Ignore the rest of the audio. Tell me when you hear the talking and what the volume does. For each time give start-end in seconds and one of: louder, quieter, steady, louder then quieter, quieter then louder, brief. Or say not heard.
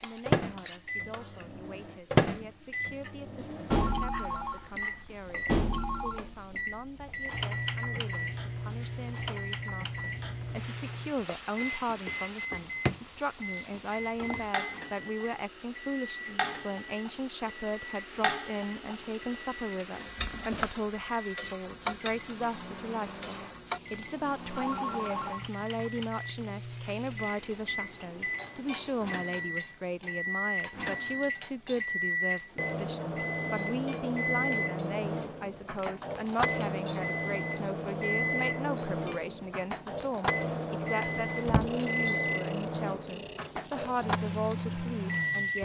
0.0-45.5 louder.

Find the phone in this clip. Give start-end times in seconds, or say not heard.
3.7-6.2, 24.6-25.4, 41.6-43.5.